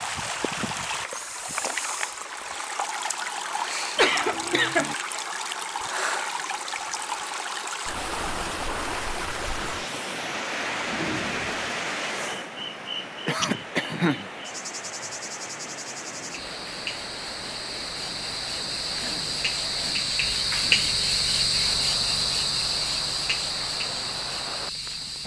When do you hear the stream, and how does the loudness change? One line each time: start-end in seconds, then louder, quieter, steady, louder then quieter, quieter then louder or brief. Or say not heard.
0.0-25.2 quieter.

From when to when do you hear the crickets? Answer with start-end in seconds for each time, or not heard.
10.8-25.2.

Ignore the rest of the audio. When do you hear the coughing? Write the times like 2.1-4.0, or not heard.
4.0-5.0, 13.2-14.3, 18.9-20.9.